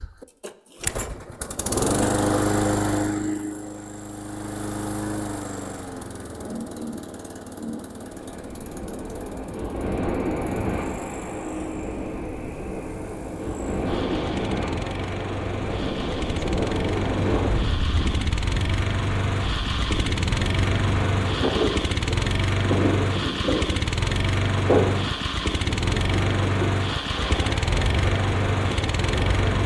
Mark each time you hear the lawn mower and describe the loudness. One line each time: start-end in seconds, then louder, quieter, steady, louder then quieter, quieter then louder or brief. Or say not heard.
0.0-29.6 quieter then louder.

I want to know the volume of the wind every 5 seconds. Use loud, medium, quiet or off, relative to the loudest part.
off, medium, loud, loud, loud, medium.